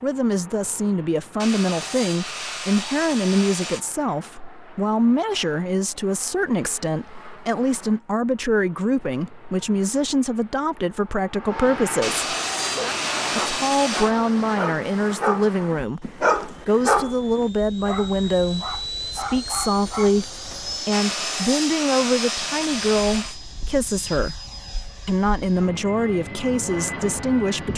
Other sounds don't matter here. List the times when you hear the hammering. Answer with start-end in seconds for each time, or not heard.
not heard.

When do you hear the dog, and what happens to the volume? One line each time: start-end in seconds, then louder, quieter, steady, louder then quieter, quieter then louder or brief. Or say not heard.
12.8-20.8 louder then quieter.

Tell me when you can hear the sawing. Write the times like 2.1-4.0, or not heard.
1.4-3.9, 12.0-14.2, 20.9-23.4.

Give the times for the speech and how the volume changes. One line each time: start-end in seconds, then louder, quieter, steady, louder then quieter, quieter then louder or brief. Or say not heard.
0.0-12.3 steady
13.3-24.4 steady
25.1-27.7 brief.